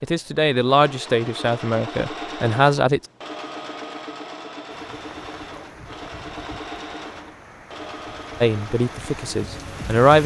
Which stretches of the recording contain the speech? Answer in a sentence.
The speech can be heard from 0.0 to 3.0 s and from 8.4 to 10.2 s.